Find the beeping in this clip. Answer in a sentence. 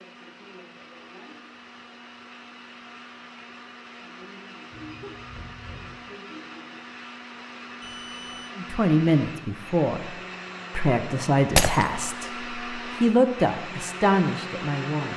You can hear the beeping from 4.7 to 6.0 s and from 7.8 to 8.6 s.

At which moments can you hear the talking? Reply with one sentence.
You can hear the talking from 8.6 to 10.2 s and from 10.8 to 15.1 s.